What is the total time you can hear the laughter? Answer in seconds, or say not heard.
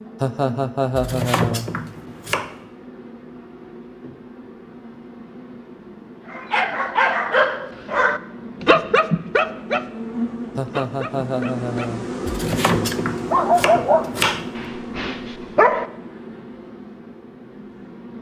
3 s.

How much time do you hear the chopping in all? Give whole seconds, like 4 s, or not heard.
4 s.